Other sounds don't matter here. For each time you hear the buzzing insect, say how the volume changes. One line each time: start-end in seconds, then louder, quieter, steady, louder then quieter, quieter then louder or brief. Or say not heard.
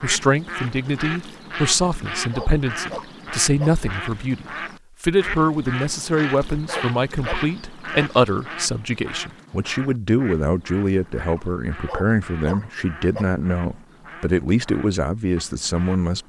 not heard.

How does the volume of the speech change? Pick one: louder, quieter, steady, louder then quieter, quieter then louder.
steady.